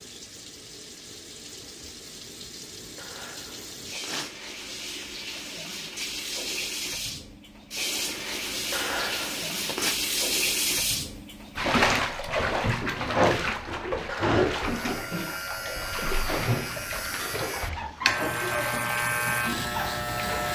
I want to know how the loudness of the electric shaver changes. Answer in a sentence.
The loudness of the electric shaver goes up.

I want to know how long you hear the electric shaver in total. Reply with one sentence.
The electric shaver can be heard for 6 seconds in total.